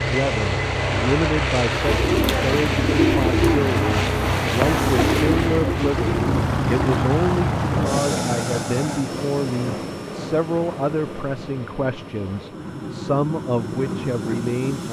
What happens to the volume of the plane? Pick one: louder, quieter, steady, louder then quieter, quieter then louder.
quieter.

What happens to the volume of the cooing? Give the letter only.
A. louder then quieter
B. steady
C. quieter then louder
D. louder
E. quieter
E.